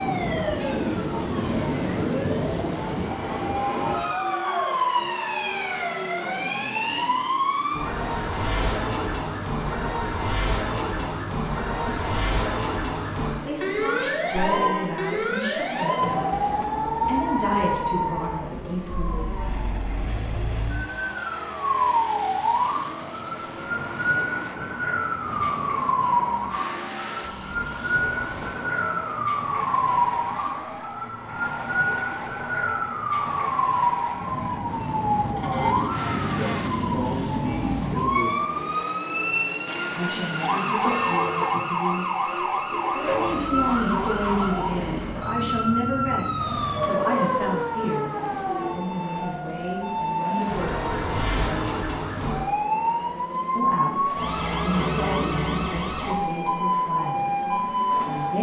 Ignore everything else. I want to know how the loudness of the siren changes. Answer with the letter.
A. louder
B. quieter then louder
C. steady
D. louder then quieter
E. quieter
C.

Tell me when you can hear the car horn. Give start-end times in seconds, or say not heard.
14.3-15.0, 35.4-36.9, 39.6-41.6.